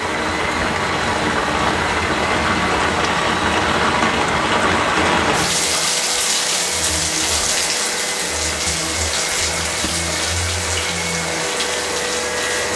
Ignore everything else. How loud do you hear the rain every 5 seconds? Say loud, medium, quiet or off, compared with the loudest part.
loud, loud, medium.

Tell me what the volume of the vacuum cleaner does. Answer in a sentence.
The volume of the vacuum cleaner stays about the same.